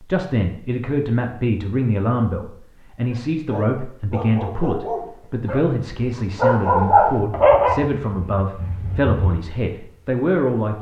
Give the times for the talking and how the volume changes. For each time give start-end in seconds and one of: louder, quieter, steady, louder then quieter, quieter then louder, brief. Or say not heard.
0.0-10.7 steady.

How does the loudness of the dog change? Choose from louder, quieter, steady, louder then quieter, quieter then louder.
louder then quieter.